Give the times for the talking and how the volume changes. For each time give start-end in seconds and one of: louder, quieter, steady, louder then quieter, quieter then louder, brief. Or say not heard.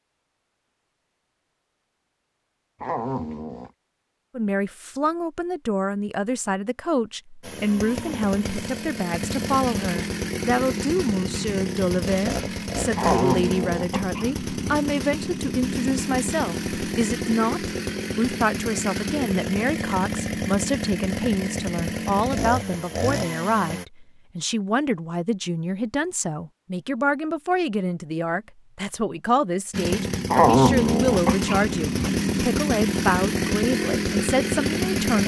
4.3-35.2 steady.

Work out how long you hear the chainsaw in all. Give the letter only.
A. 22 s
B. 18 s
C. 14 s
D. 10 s
A.